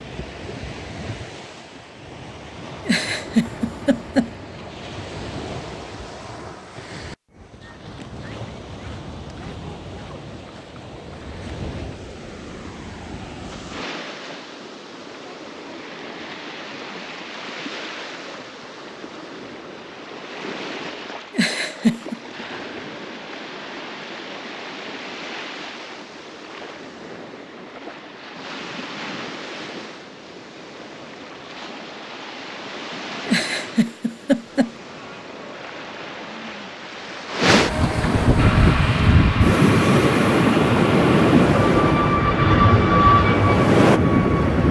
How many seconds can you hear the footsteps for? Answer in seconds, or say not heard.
not heard.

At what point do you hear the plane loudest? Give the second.
43 s.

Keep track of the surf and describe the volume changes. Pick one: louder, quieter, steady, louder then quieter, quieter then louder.
louder.